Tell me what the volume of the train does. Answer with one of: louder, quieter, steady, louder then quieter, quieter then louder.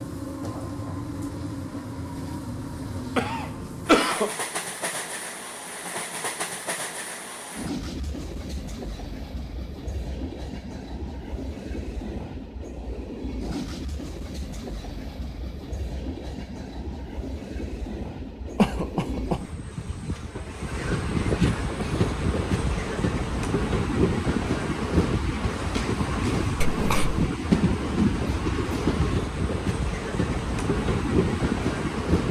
louder.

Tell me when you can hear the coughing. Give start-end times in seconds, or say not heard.
2.8-4.3, 18.6-19.4, 26.6-27.2.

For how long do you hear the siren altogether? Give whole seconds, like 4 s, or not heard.
not heard.